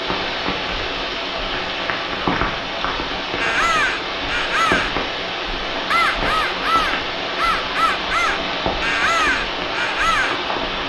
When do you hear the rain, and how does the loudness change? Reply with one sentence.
You can hear the rain from 0.0 to 10.8 s, at a steady volume.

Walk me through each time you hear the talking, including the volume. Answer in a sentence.
You can't hear the talking here.